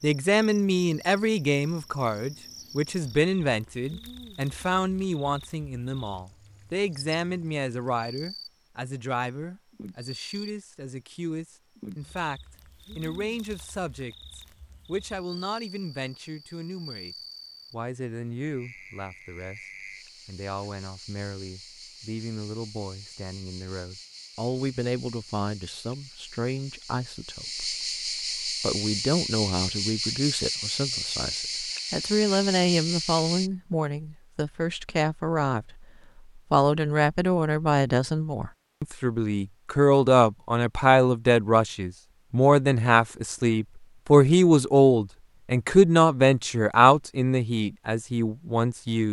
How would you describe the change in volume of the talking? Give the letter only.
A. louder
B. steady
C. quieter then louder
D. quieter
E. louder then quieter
C.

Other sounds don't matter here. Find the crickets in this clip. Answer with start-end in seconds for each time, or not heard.
0.0-8.6, 9.7-10.6, 11.8-33.5.